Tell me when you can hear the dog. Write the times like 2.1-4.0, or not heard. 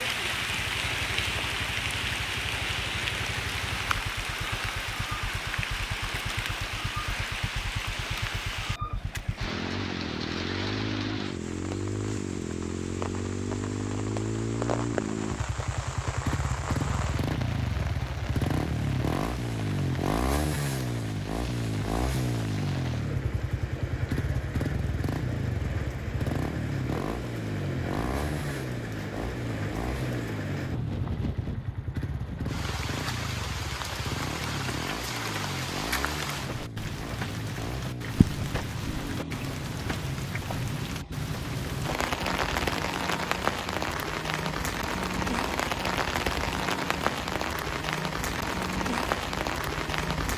not heard.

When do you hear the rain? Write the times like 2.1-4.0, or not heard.
0.0-50.3.